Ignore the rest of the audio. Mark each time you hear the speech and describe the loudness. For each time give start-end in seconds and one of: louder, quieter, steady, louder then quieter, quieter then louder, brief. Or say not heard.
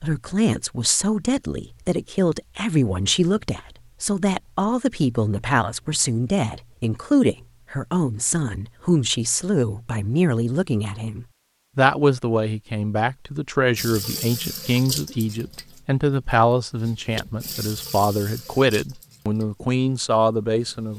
0.0-20.9 steady.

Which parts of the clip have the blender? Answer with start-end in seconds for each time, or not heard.
not heard.